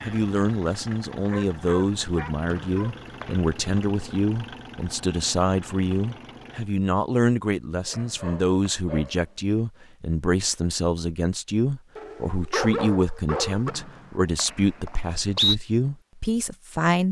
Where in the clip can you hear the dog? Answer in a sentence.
You can hear the dog from 1.2 to 3.0 s, from 7.8 to 9.6 s and from 11.9 to 13.8 s.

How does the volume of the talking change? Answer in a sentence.
The volume of the talking stays about the same.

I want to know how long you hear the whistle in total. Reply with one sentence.
The whistle can be heard for 4 seconds in total.